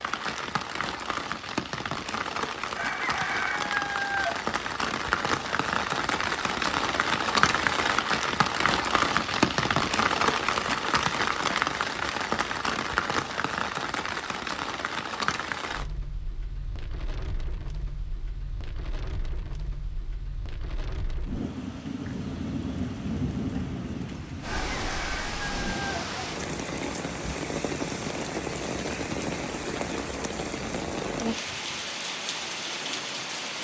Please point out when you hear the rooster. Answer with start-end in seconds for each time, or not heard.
2.8-4.3, 24.6-26.0.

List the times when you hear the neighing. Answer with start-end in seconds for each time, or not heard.
not heard.